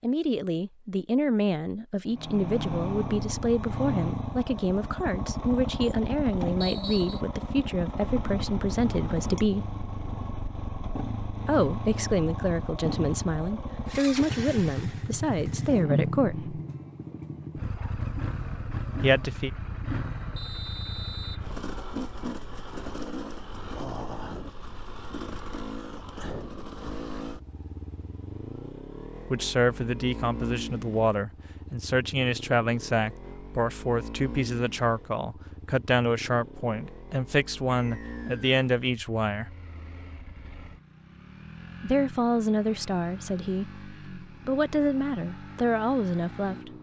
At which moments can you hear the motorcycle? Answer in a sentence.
You can hear the motorcycle from 2.1 to 46.7 s.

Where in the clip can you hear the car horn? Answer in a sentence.
The car horn can't be heard in this clip.